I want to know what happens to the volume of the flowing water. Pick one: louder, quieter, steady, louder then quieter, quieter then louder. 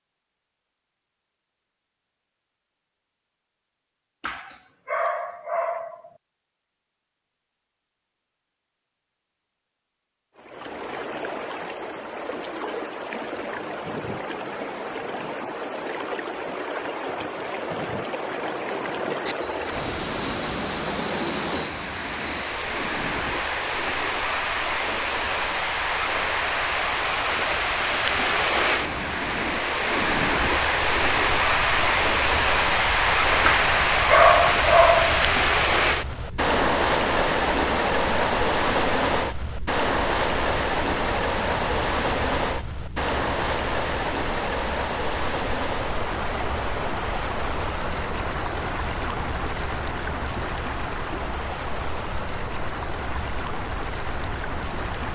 louder then quieter.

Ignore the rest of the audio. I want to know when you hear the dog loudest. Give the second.
34 s.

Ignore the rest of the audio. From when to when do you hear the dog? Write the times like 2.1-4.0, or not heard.
4.2-6.1, 33.4-35.1.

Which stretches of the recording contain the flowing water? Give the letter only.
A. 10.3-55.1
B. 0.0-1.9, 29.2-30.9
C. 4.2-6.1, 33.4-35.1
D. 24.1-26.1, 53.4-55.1
A.